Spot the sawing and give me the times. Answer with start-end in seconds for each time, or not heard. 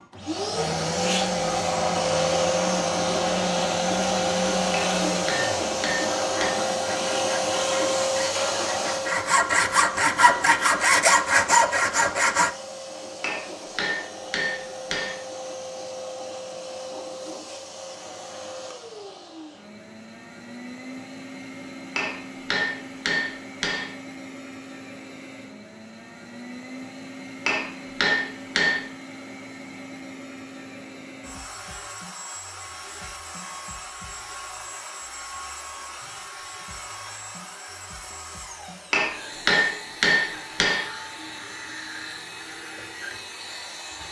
0.6-12.5.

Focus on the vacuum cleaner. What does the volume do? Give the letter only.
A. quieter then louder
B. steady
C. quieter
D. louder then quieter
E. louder
C.